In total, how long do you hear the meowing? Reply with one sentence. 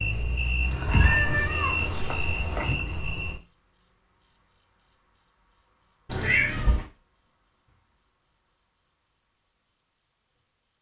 The meowing can be heard for 3 seconds in total.